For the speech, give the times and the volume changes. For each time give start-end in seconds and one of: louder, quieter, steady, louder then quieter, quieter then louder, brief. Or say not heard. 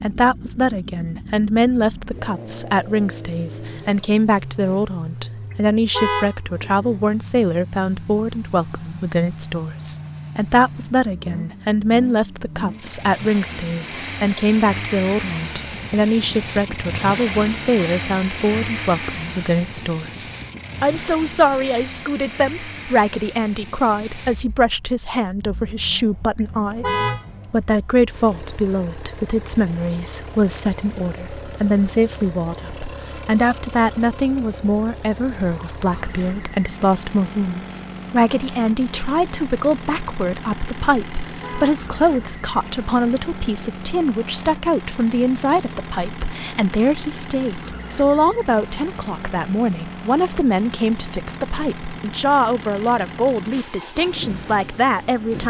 0.0-55.4 steady.